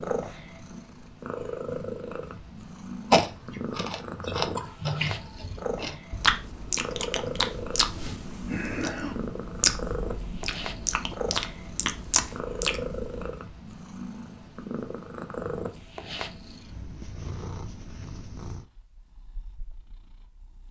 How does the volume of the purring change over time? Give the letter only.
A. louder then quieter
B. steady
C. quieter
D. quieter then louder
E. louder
C.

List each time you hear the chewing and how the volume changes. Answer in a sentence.
The chewing can be heard from 3.1 to 13.3 s, at a steady volume.